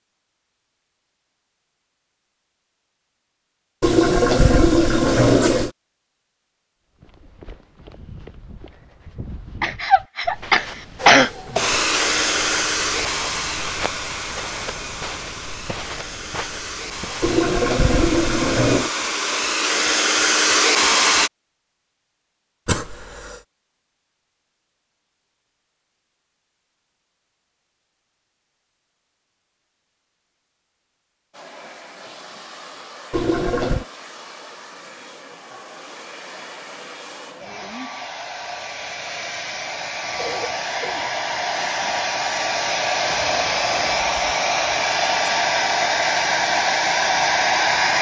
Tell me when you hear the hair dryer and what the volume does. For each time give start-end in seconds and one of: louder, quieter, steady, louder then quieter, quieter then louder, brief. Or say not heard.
11.0-21.3 quieter then louder
31.3-47.9 louder.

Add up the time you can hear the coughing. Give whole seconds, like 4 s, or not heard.
3 s.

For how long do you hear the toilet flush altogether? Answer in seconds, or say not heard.
4 s.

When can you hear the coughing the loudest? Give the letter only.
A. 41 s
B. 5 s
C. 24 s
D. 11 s
D.